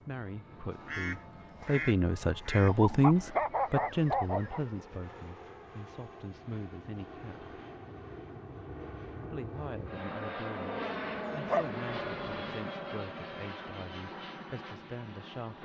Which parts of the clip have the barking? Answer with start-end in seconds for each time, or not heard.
2.6-4.6, 11.4-12.6.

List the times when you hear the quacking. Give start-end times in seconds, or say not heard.
0.7-2.8.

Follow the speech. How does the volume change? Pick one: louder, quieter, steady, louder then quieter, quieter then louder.
quieter.